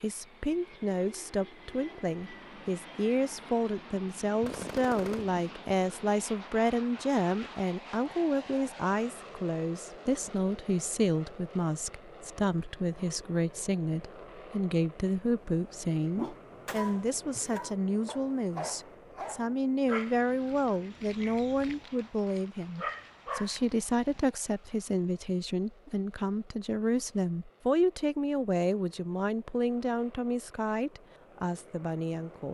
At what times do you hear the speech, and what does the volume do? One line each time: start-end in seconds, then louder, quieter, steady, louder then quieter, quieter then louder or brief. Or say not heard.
0.0-32.4 steady.